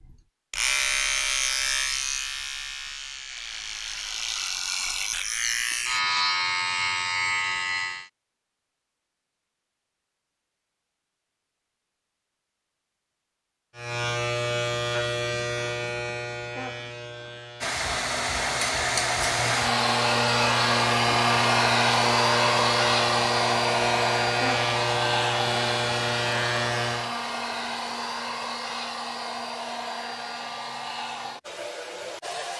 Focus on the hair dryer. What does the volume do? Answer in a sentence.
The volume of the hair dryer goes down.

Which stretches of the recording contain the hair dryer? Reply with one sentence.
You can hear the hair dryer from 17.6 to 32.5 s.